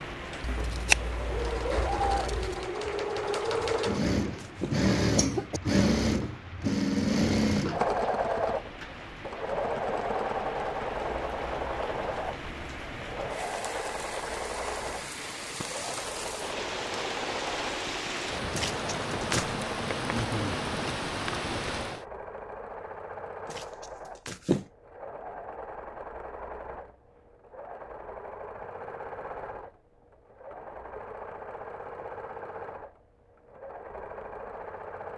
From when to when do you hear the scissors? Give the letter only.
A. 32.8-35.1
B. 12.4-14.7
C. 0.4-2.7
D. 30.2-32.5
C.